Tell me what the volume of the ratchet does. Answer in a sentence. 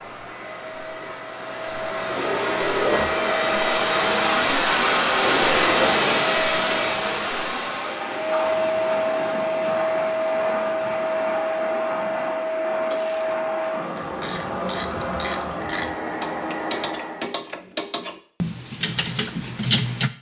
The volume of the ratchet goes up.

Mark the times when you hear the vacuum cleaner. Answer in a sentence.
The vacuum cleaner can be heard from 0.0 to 17.4 s.